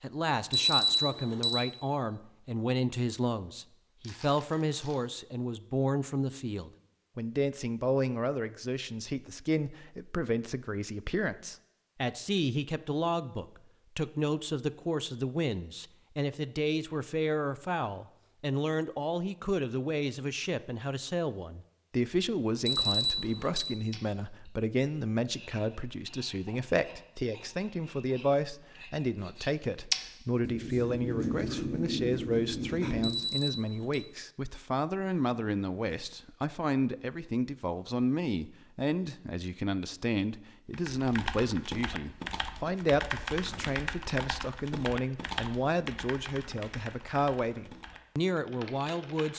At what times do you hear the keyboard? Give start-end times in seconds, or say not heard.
40.7-49.3.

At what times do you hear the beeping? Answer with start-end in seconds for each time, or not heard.
0.5-1.6, 22.6-23.7, 33.0-34.0.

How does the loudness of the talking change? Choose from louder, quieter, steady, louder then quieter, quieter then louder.
steady.